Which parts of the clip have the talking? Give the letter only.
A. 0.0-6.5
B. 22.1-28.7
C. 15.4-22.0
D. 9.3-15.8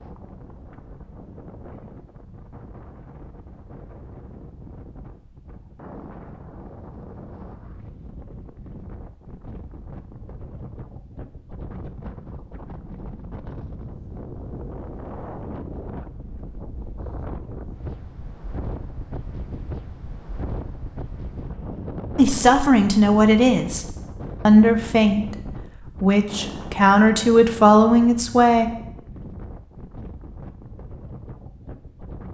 B.